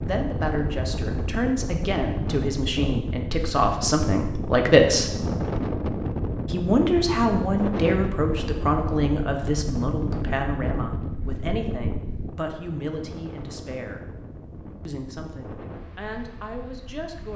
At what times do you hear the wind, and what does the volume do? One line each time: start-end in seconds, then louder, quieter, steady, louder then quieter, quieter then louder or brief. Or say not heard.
0.0-17.3 quieter.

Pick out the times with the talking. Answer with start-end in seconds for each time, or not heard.
0.0-5.1, 6.5-14.1, 14.8-17.3.